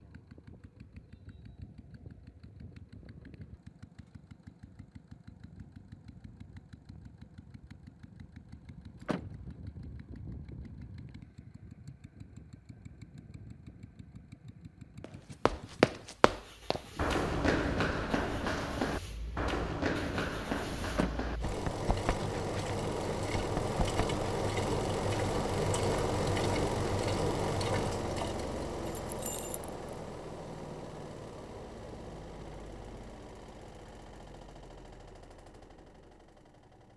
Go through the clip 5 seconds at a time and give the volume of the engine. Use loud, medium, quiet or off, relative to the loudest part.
quiet, quiet, quiet, quiet, loud, loud, quiet, quiet.